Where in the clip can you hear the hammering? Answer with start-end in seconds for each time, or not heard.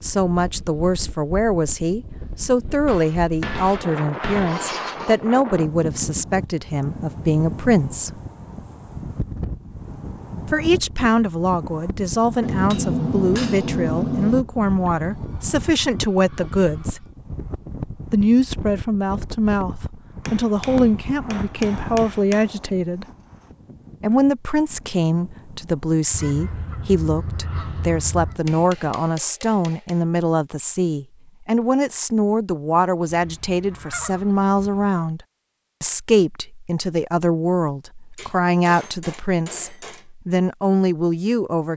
2.9-4.6, 12.4-14.4, 20.2-22.4, 28.4-30.0, 38.1-40.0.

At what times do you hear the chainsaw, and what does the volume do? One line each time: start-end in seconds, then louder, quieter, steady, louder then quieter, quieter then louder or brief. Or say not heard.
not heard.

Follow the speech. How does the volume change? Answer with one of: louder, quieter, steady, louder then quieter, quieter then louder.
steady.